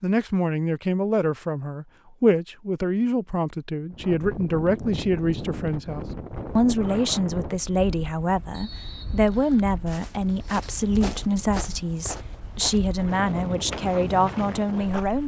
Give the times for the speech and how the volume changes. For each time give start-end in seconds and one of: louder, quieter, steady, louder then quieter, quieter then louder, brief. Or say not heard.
0.0-15.2 steady.